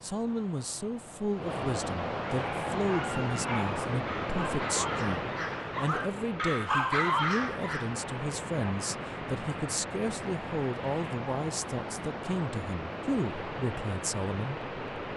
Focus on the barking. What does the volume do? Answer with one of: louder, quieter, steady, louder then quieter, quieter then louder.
louder.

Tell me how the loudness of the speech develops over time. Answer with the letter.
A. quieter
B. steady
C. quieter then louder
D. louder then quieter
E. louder
B.